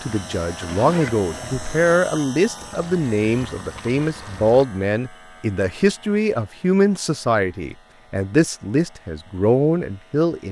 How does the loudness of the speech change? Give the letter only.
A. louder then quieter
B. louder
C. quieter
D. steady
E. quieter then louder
D.